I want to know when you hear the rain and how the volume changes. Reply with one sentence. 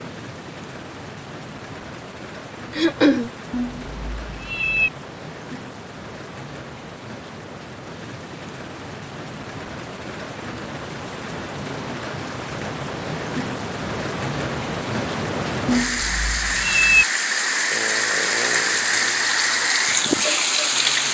You can hear the rain from 0.0 to 21.1 s, getting louder.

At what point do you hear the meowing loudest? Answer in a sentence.
The volume of the meowing peaks at 17 seconds.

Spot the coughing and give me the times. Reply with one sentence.
You can hear the coughing from 2.7 to 3.3 s.